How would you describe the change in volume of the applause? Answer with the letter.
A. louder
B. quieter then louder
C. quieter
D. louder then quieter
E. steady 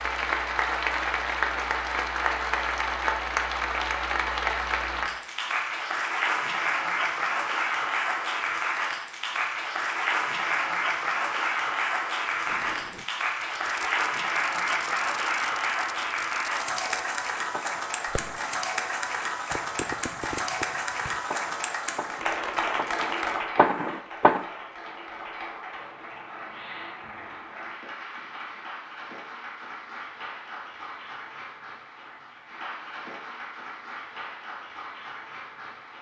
C.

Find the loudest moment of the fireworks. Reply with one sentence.
The loudest moment of the fireworks is at 24 seconds.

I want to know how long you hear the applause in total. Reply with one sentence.
The applause can be heard for 36 seconds in total.